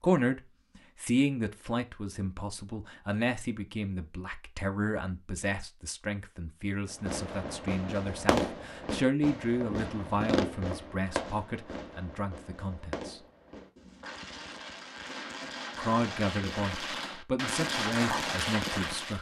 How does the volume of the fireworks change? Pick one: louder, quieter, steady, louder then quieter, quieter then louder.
quieter then louder.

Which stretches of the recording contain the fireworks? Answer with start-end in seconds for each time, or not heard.
6.9-19.1.